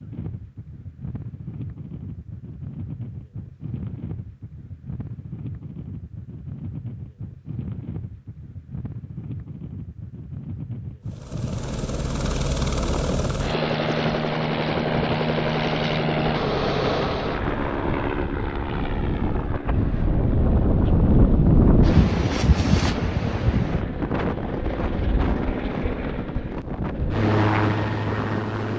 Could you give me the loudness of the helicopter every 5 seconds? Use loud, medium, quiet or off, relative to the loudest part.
off, off, loud, loud, medium, loud.